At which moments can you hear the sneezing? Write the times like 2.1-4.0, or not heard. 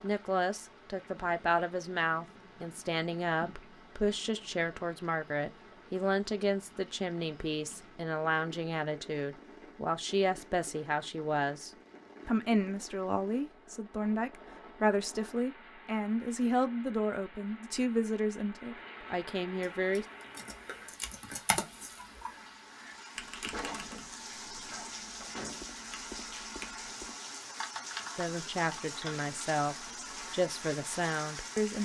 24.4-25.0.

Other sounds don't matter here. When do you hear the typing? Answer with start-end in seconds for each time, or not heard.
19.6-29.2.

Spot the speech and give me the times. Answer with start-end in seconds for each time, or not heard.
0.0-20.1, 28.1-31.8.